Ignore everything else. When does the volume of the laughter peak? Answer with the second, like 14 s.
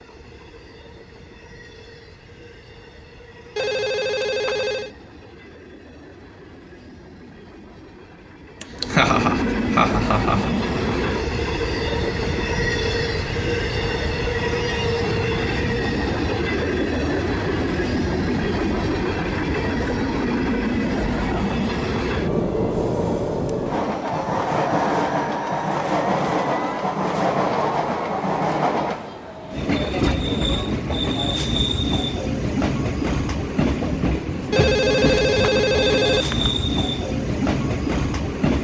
9 s.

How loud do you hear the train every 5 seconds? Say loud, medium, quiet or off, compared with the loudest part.
quiet, medium, loud, loud, loud, loud, loud, loud.